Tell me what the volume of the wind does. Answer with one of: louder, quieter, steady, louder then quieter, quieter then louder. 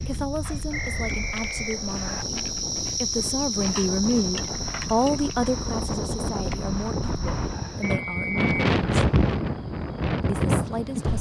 louder.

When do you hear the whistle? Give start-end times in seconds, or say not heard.
0.7-2.2, 7.8-8.4.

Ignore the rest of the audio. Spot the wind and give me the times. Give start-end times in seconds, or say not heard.
0.0-11.1.